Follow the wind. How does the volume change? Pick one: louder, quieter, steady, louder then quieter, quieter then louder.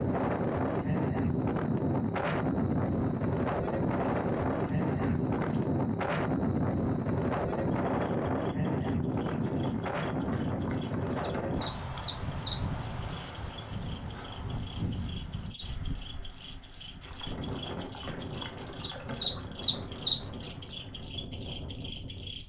quieter.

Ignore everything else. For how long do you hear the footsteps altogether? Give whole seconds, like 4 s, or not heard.
not heard.